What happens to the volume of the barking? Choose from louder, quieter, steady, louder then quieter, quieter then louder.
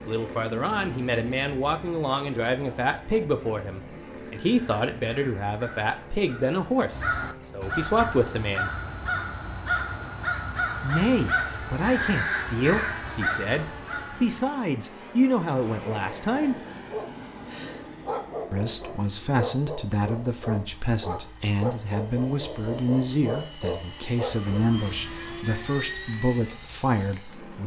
louder.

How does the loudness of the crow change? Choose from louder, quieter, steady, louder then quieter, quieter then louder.
louder.